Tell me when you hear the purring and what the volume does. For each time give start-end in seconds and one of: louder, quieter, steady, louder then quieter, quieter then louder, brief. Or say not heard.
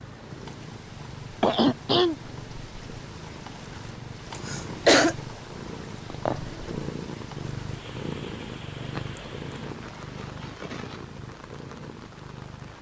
0.0-12.7 louder then quieter.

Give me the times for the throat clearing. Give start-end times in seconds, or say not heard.
1.4-2.1, 4.3-5.2, 8.8-11.0.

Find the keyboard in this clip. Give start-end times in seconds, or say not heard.
not heard.